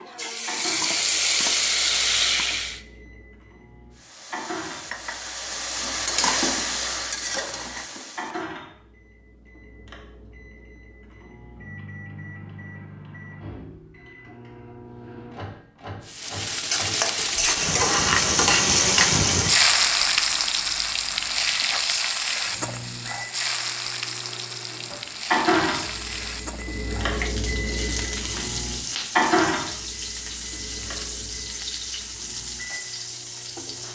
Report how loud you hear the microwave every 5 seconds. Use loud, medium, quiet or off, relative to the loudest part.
quiet, quiet, quiet, quiet, quiet, loud, quiet.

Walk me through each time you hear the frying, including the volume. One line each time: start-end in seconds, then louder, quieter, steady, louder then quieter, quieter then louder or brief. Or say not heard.
0.0-2.8 brief
4.0-8.5 louder then quieter
16.1-33.9 quieter.